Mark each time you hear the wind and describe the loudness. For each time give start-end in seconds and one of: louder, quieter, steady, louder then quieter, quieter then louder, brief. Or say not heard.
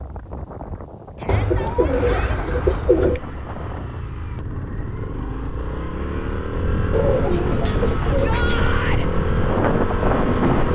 0.0-10.6 louder.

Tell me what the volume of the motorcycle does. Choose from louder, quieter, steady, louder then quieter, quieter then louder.
louder.